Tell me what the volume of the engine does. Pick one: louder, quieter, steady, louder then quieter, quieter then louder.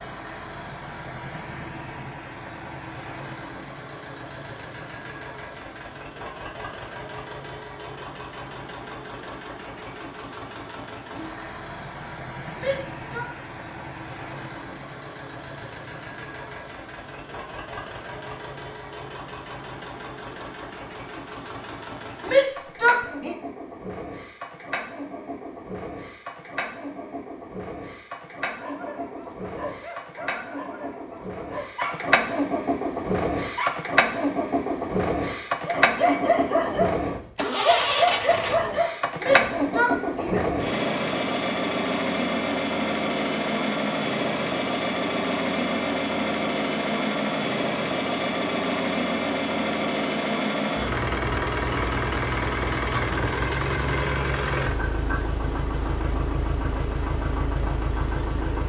louder.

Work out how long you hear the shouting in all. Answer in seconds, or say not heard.
3 s.